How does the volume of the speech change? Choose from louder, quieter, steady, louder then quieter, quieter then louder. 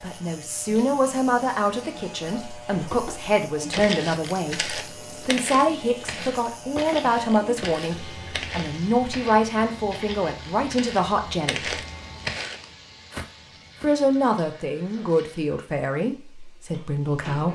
steady.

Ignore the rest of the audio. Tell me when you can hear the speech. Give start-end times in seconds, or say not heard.
0.0-11.7, 13.8-17.5.